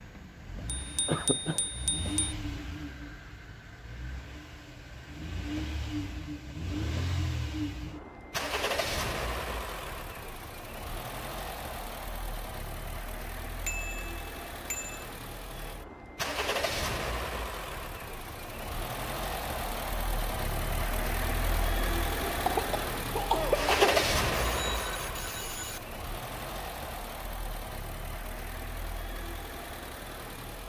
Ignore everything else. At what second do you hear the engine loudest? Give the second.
24 s.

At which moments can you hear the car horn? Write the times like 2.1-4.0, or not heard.
not heard.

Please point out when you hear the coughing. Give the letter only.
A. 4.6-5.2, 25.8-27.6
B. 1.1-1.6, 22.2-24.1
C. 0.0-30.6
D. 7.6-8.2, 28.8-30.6
B.